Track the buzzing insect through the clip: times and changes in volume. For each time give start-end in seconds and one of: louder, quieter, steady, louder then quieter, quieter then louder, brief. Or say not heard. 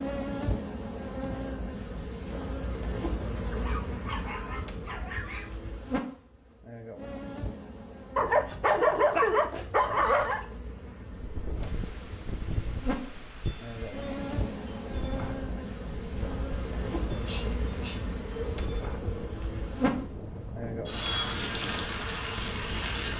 0.0-23.1 quieter then louder.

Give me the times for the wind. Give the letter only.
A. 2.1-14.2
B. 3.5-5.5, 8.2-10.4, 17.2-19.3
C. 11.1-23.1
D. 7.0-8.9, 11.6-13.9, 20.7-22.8
C.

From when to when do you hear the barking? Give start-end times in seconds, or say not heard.
3.5-5.5, 8.2-10.4, 17.2-19.3.